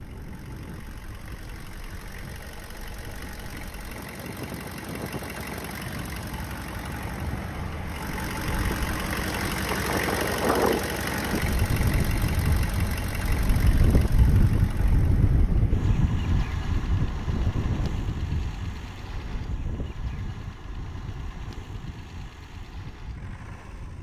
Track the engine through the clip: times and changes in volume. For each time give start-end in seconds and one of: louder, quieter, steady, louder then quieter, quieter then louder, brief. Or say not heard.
0.0-23.9 louder then quieter.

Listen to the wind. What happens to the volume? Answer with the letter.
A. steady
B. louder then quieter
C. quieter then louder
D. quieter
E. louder
B.